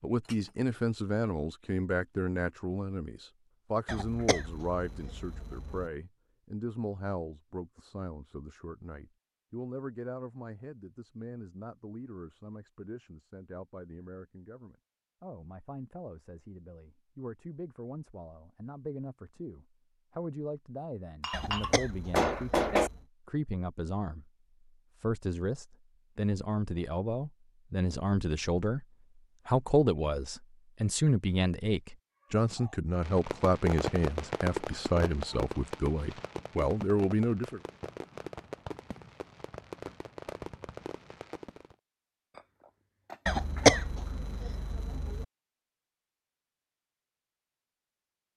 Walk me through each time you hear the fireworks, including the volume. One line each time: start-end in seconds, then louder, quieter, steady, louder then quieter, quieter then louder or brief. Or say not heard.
32.5-41.8 quieter.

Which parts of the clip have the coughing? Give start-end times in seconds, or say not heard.
3.9-5.9, 21.3-23.0, 43.2-45.2.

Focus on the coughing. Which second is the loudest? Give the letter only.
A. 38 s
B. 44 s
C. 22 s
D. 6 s
B.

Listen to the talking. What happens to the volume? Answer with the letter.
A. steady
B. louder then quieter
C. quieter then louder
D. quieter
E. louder
C.